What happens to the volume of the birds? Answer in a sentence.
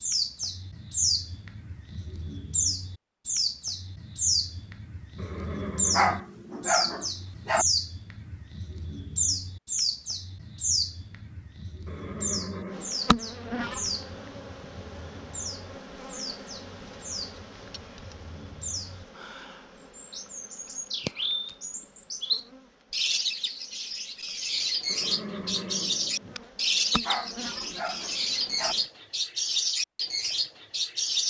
The loudness of the birds goes down, then up.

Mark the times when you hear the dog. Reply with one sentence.
You can hear the dog from 5.9 to 7.7 s and from 27.1 to 28.8 s.